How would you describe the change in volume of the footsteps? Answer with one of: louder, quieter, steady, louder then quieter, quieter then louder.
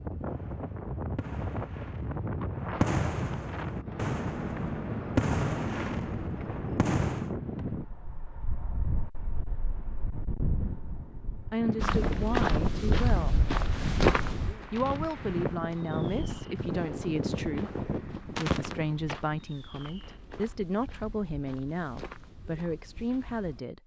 quieter.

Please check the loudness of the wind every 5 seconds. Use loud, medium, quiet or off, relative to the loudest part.
loud, loud, loud, loud, off.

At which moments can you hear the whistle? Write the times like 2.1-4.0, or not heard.
not heard.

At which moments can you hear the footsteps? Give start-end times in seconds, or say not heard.
11.8-23.6.